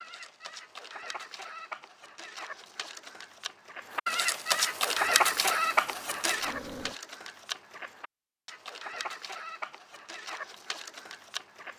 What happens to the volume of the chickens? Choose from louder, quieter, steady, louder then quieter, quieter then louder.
louder then quieter.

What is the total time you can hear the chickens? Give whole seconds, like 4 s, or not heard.
12 s.